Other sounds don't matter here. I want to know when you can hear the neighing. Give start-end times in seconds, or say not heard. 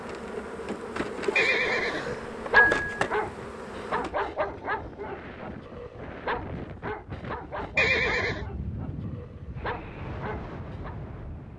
1.4-2.8, 7.8-8.4.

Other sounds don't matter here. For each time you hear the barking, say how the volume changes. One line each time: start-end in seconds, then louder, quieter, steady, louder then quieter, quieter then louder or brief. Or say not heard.
1.2-10.9 quieter.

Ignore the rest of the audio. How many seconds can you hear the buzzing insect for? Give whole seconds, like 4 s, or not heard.
4 s.